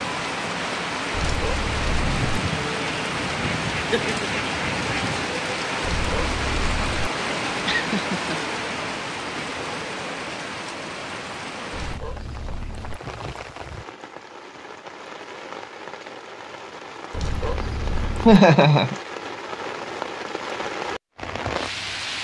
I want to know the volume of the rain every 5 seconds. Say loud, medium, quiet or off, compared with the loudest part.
loud, loud, medium, medium, loud.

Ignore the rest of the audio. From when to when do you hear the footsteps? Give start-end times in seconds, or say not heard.
not heard.